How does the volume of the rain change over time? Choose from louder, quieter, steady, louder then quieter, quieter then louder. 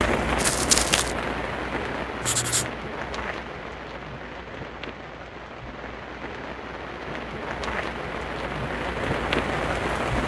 quieter then louder.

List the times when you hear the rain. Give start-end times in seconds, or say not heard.
0.0-10.2.